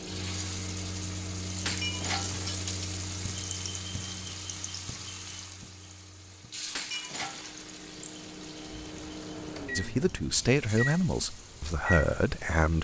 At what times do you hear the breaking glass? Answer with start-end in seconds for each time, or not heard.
1.6-2.8, 6.8-7.6.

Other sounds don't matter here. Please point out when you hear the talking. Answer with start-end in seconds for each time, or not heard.
9.8-12.7.